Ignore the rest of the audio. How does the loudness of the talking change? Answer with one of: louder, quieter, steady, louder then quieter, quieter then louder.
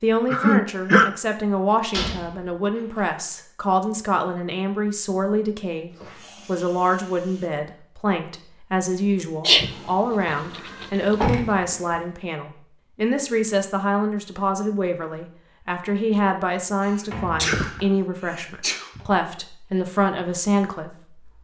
steady.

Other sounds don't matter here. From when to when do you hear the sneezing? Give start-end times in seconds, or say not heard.
0.3-1.1, 9.4-11.2, 16.9-19.1.